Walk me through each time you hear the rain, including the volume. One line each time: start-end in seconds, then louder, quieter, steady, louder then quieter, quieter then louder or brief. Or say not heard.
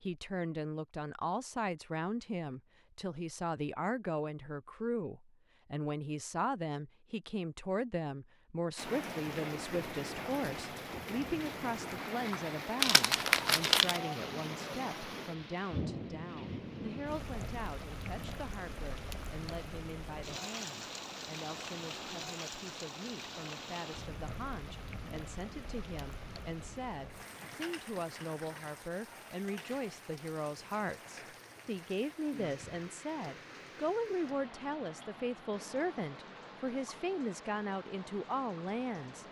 8.8-39.2 quieter.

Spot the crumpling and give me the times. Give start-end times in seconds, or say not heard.
12.8-14.1.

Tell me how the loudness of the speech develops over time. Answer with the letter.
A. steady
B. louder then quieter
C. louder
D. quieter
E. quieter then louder
E.